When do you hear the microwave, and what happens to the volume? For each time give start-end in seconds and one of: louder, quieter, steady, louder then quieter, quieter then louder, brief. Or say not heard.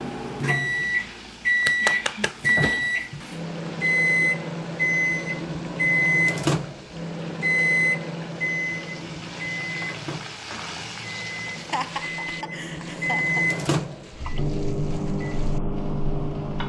0.0-16.6 quieter then louder.